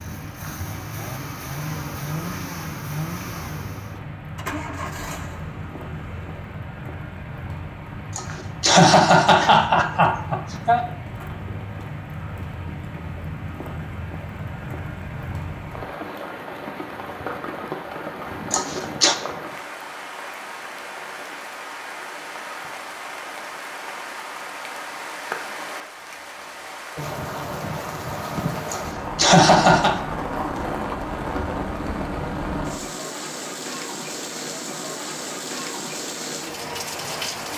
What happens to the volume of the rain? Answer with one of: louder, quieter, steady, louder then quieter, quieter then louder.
louder.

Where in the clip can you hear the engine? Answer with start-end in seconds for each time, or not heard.
0.0-6.5.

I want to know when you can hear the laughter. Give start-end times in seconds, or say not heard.
8.2-10.8, 18.5-19.1, 28.7-30.0.